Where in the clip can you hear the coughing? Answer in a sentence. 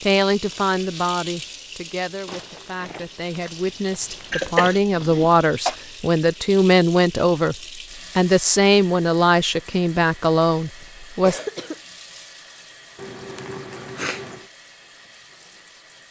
The coughing can be heard from 4.3 to 5.8 s and from 10.8 to 11.8 s.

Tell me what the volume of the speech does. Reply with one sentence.
The loudness of the speech goes up.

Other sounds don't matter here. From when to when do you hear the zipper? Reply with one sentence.
The zipper can be heard from 12.9 to 14.5 s.